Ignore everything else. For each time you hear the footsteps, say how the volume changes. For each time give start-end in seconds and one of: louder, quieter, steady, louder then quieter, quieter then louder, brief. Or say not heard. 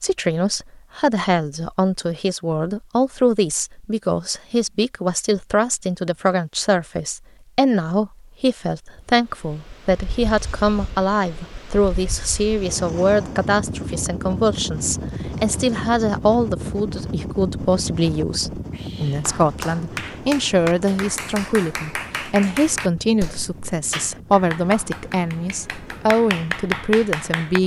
not heard.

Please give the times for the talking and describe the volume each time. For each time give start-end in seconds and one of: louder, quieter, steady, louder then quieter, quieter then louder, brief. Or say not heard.
0.0-27.6 steady.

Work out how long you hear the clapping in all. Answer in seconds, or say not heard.
9 s.